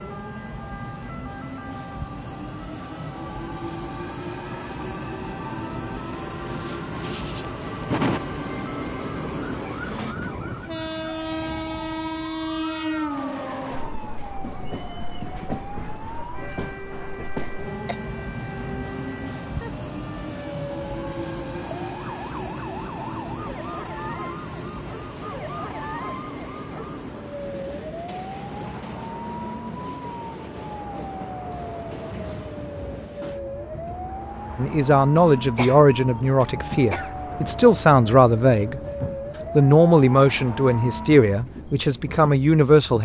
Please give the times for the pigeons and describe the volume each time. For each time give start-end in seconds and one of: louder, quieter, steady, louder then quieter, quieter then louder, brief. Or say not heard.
not heard.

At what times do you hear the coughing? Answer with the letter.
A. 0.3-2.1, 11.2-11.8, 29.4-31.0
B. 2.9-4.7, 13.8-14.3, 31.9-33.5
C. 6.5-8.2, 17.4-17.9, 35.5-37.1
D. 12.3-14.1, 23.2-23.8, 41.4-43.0
C.